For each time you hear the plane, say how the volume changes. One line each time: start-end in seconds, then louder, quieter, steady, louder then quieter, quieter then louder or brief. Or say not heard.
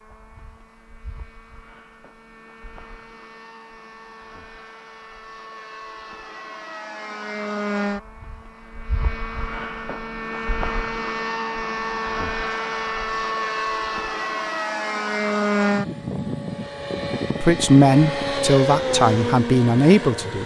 0.0-20.4 louder.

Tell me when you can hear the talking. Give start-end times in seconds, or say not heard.
17.4-20.4.